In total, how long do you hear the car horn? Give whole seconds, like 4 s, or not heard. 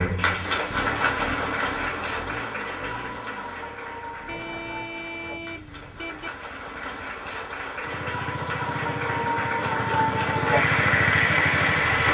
2 s.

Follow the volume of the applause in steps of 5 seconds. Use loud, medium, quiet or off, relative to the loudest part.
medium, medium, loud.